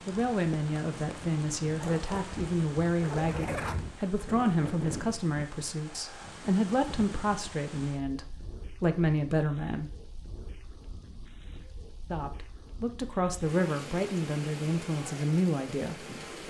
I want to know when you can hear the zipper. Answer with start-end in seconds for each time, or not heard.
1.8-4.0.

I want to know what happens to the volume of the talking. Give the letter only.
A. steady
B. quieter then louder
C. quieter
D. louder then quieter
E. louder
A.